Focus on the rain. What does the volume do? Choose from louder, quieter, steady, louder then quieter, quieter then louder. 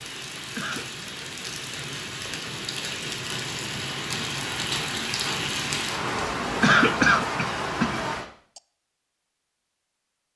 louder.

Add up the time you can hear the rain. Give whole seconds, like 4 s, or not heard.
8 s.